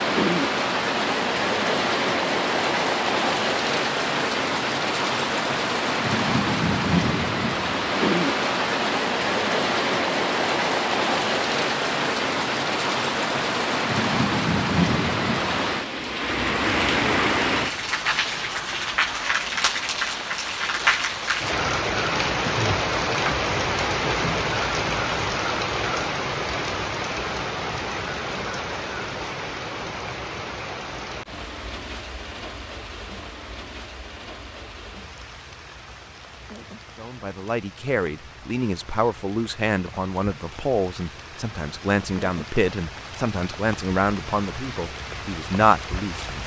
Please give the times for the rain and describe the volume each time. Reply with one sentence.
You can hear the rain from 0.0 to 46.4 s, getting quieter.